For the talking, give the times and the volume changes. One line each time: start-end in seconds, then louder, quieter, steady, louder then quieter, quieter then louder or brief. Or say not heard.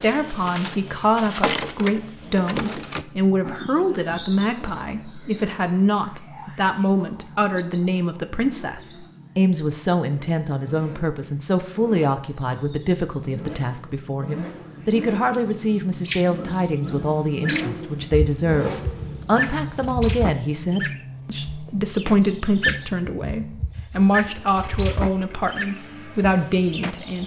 0.0-27.2 steady.